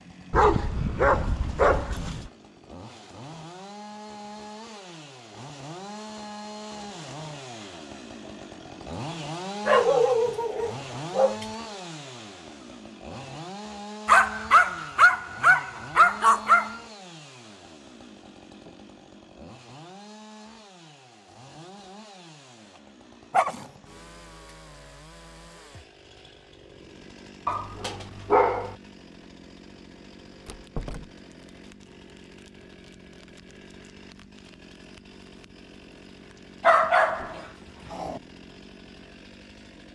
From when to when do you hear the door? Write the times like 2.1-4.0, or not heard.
30.4-31.1.